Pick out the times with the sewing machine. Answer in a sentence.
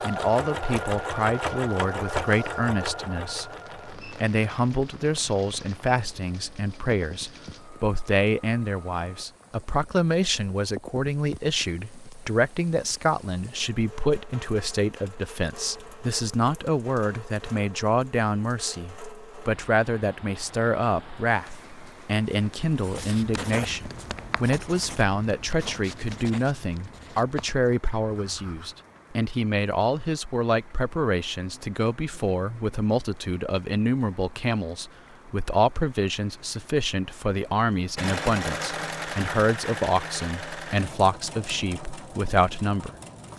You can hear the sewing machine from 0.0 to 9.2 s and from 38.0 to 43.3 s.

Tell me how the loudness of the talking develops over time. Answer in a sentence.
The volume of the talking stays about the same.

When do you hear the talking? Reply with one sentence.
The talking can be heard from 0.0 to 43.3 s.